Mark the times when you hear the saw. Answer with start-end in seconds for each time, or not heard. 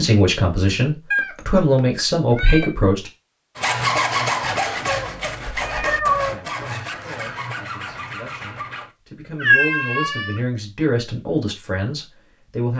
3.5-8.9.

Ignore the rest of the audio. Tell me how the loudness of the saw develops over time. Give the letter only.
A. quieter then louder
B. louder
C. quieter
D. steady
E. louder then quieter
C.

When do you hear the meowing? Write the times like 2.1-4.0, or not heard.
1.1-2.7, 4.8-6.3, 9.3-10.4.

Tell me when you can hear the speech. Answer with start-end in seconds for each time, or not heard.
0.0-3.1, 6.2-12.7.